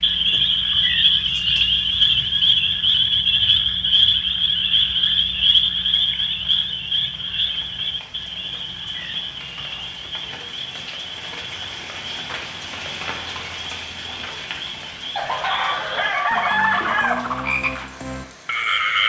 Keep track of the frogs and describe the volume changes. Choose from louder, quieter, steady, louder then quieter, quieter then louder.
quieter then louder.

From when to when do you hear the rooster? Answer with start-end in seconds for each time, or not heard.
15.2-17.1.